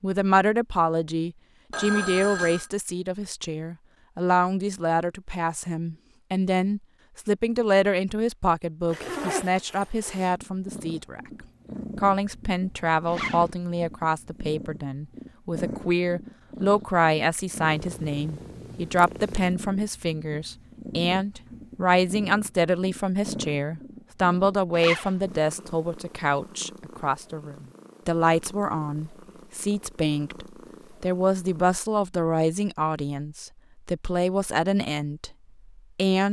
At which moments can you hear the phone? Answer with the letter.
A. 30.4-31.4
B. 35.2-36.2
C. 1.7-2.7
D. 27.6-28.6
C.